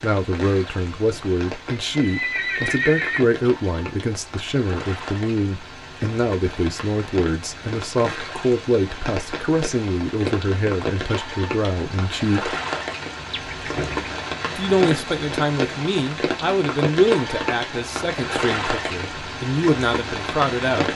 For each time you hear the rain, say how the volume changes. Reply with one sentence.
The rain can be heard from 0.0 to 20.9 s, getting louder.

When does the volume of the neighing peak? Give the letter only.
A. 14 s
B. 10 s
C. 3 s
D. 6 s
C.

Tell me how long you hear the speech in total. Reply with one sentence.
The speech can be heard for 19 seconds in total.